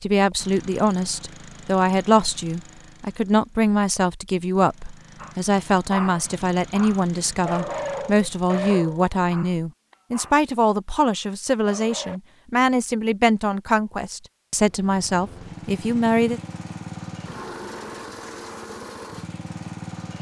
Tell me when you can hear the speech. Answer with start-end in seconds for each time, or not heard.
0.0-16.4.